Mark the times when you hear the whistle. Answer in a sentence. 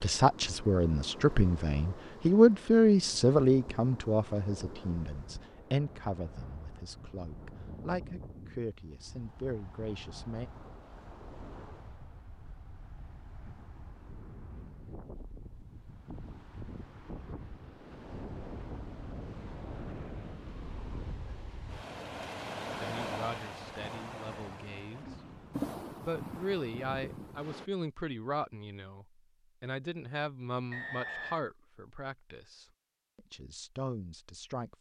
You can hear the whistle from 30.7 to 31.4 s.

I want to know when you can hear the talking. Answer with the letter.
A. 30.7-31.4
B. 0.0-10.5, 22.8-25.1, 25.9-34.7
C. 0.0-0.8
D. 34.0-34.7
B.